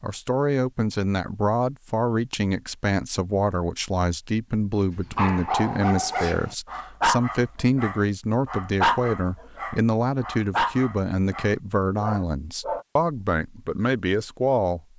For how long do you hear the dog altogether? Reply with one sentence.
You can hear the dog for 8 seconds altogether.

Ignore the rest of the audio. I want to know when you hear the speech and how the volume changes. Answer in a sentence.
The speech can be heard from 0.0 to 14.8 s, at a steady volume.